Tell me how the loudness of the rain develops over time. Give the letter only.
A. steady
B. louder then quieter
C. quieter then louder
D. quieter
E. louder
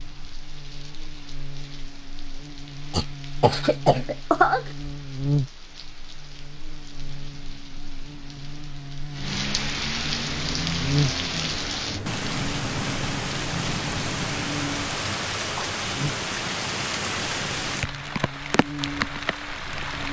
E.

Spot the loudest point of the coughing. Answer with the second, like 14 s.
4 s.